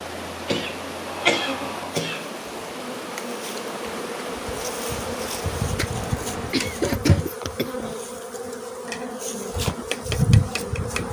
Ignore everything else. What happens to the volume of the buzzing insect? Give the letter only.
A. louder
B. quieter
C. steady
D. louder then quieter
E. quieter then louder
A.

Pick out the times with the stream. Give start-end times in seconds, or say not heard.
0.0-7.0.